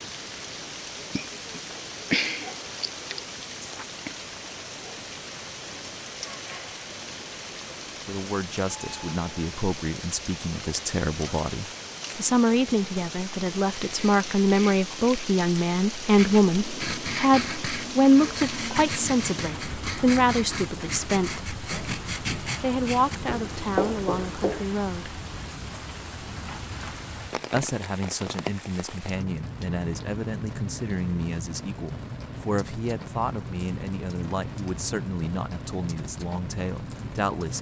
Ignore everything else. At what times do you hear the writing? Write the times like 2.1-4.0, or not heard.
16.1-24.6.